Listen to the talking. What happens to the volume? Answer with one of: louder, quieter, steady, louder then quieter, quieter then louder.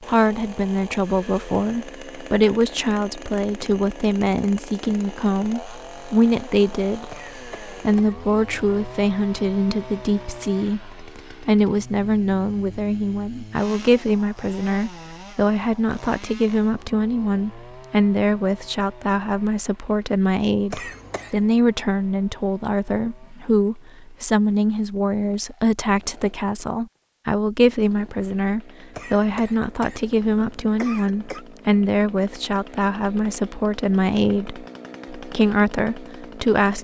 steady.